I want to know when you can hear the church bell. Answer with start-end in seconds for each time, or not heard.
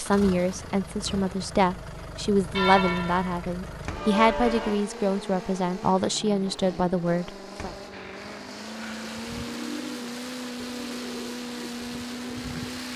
2.5-4.8.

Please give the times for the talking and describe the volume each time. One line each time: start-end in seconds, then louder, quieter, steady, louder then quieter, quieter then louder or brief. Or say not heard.
0.0-7.7 steady.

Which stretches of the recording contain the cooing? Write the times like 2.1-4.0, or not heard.
7.9-12.9.